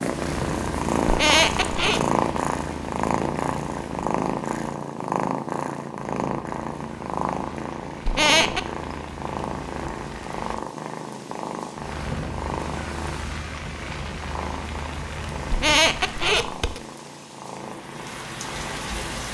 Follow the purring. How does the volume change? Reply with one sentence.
The volume of the purring goes down.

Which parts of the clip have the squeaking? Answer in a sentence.
The squeaking can be heard from 1.1 to 2.0 s, from 8.1 to 8.7 s and from 15.5 to 16.8 s.